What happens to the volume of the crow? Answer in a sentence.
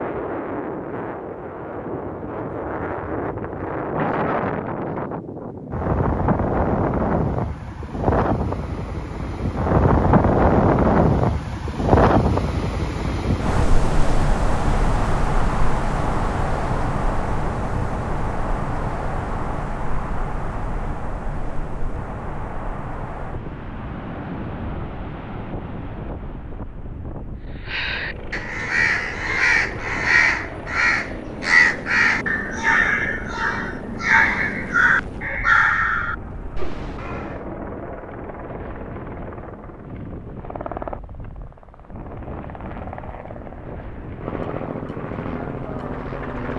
The loudness of the crow stays about the same.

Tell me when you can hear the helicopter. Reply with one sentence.
You can hear the helicopter from 27.9 to 46.5 s.